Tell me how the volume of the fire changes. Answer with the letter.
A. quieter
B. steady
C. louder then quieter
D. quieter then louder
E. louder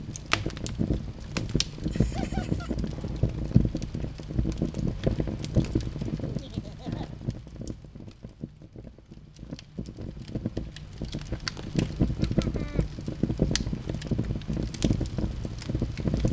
D.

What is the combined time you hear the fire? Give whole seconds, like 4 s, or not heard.
16 s.